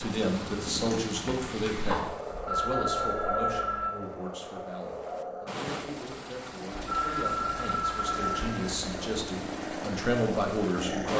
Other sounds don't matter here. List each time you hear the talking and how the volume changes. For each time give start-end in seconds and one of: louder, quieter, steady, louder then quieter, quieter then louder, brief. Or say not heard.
0.0-11.1 quieter then louder.